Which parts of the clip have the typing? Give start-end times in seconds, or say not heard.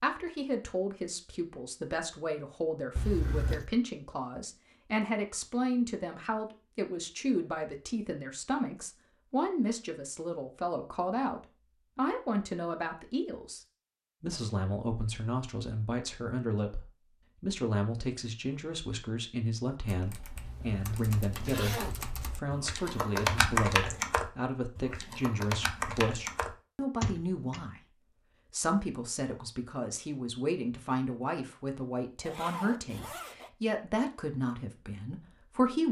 19.9-27.6.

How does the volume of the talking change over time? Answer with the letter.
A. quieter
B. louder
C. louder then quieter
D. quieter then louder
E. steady
E.